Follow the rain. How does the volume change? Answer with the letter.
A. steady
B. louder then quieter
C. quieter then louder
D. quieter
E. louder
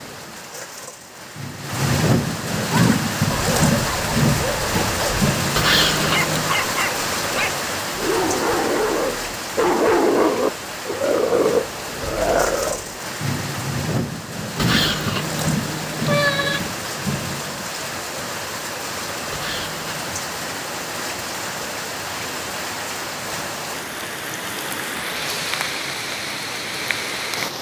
D.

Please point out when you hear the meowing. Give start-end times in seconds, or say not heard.
5.5-6.5, 14.6-16.6, 19.3-20.1.